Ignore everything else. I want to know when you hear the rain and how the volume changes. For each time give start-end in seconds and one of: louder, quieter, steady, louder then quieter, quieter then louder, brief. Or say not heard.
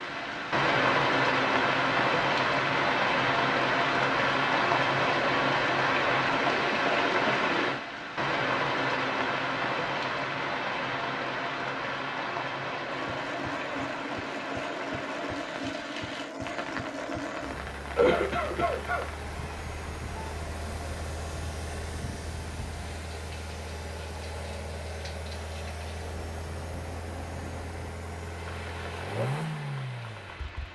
0.0-30.7 quieter.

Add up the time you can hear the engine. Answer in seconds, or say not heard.
18 s.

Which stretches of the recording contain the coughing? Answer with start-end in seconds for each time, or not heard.
17.9-19.1.